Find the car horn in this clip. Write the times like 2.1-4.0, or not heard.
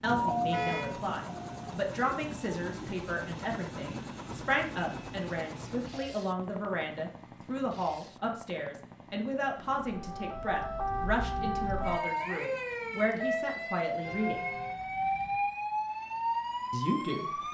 0.5-0.9, 14.0-15.4.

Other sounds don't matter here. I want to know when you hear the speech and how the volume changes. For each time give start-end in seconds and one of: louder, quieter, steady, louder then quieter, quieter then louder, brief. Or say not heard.
0.0-14.5 steady
16.7-17.4 brief.